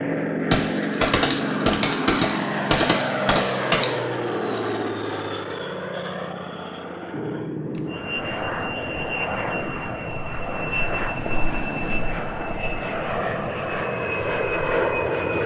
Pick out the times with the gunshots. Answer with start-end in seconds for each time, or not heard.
0.5-4.1.